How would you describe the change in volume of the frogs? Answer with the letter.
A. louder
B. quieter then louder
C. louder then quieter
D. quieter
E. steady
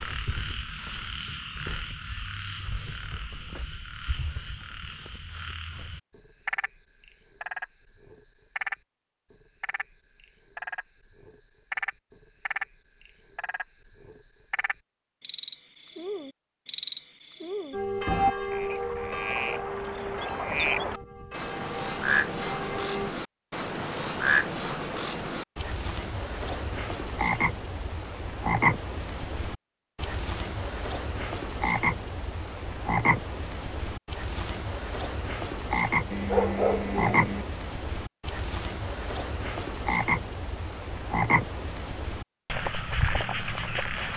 A.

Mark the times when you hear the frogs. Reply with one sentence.
You can hear the frogs from 0.0 to 44.1 s.